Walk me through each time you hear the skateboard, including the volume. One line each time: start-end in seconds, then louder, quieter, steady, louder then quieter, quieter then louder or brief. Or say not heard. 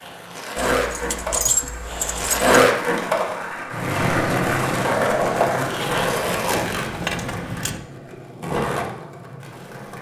0.0-9.9 louder then quieter.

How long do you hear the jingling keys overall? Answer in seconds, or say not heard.
4 s.